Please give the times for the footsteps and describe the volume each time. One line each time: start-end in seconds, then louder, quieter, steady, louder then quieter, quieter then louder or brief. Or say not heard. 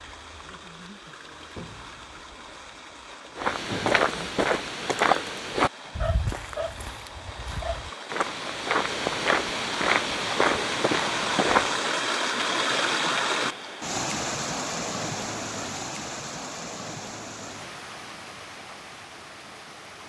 3.4-11.8 quieter then louder.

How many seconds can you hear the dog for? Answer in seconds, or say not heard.
2 s.